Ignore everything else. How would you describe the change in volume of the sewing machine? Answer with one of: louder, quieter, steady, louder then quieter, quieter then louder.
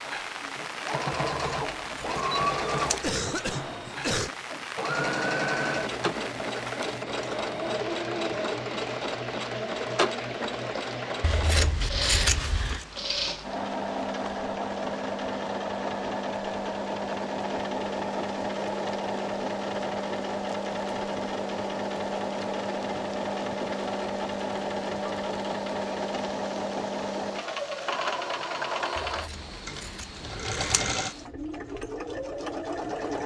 steady.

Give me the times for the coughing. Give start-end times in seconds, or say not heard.
3.0-4.3.